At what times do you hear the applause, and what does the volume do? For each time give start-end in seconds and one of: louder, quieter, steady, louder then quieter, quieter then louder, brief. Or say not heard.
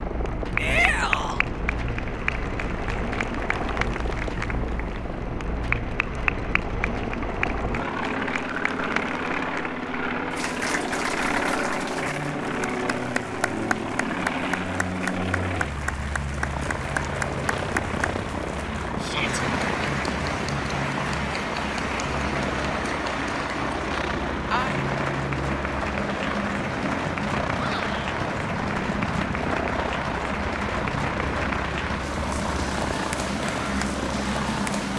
0.0-34.9 steady.